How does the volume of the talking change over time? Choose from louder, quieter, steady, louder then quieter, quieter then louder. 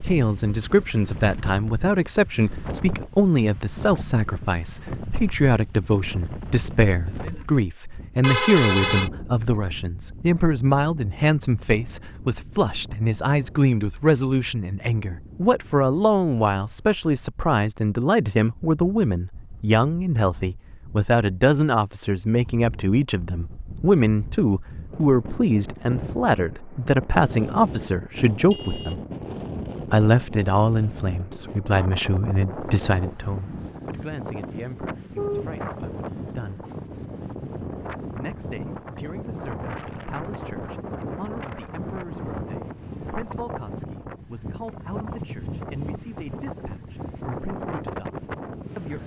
quieter.